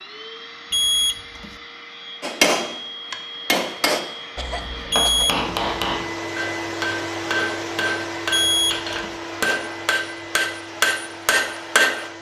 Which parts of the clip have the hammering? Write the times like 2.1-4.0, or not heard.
2.2-12.1.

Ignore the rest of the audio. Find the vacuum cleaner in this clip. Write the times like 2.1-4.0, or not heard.
0.0-12.1.